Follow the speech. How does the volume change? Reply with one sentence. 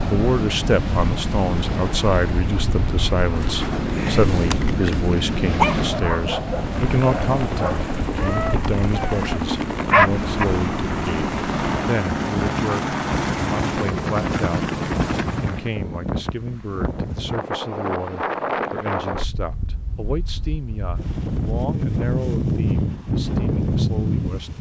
The volume of the speech goes down.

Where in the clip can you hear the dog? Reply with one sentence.
The dog can be heard from 3.4 to 10.4 s.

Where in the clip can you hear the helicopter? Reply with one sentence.
You can hear the helicopter from 6.4 to 15.8 s.